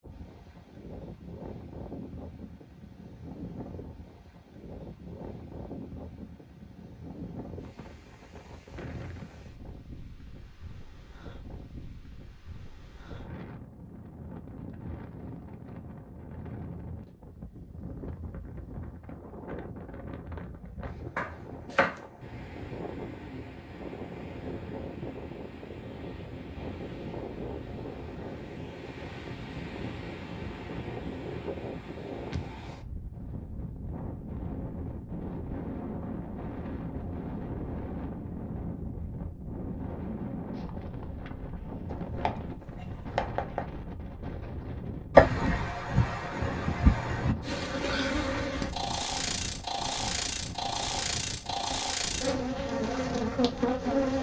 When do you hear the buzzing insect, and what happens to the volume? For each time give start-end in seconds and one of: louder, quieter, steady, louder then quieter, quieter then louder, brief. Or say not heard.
47.4-54.1 steady.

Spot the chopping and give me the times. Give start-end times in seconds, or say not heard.
21.1-21.9, 41.9-43.7.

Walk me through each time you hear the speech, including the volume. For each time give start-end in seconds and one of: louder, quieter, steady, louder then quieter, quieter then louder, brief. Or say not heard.
not heard.